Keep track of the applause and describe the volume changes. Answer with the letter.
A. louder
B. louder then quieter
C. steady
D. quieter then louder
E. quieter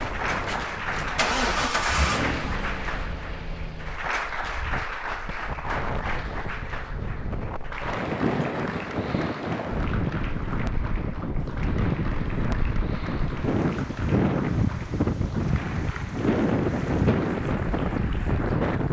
E.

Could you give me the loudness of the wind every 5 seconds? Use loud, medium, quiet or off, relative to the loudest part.
quiet, medium, loud, loud.